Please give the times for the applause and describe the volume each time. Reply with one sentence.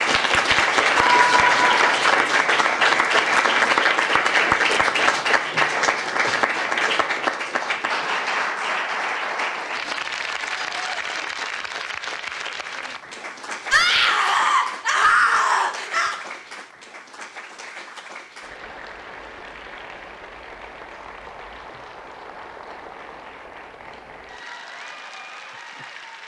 You can hear the applause from 0.0 to 26.2 s, getting quieter.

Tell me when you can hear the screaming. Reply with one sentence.
You can hear the screaming from 0.9 to 2.0 s and from 13.7 to 16.1 s.